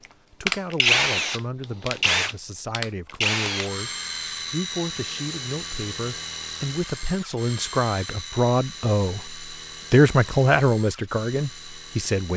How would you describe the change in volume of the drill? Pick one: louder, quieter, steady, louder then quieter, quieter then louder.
quieter.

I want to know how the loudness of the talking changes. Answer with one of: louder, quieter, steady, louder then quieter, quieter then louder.
louder.